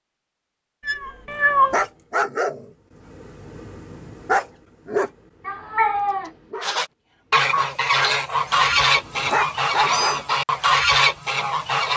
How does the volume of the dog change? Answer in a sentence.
The loudness of the dog goes down, then up.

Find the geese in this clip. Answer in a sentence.
You can hear the geese from 6.6 to 11.9 s.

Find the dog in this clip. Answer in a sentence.
The dog can be heard from 1.7 to 10.2 s.